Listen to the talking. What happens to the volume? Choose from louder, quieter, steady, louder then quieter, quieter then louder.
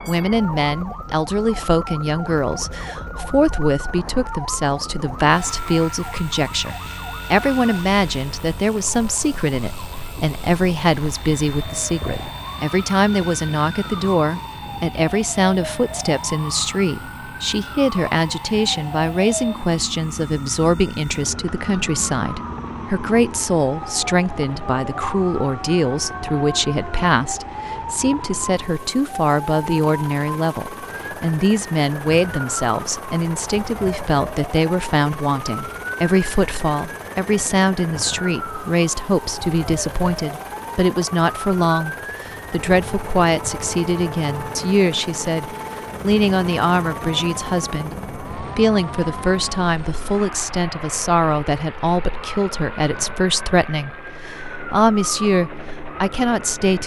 steady.